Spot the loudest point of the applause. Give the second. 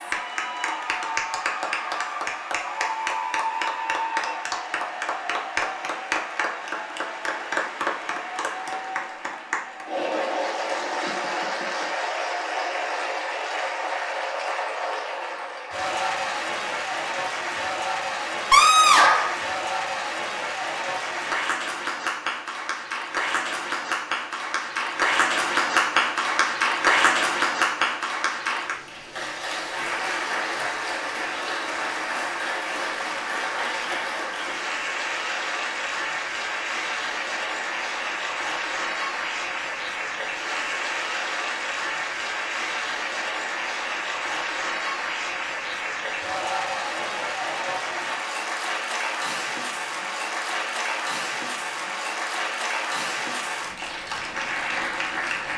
27 s.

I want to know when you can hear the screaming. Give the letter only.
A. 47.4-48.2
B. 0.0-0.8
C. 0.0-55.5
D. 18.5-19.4
D.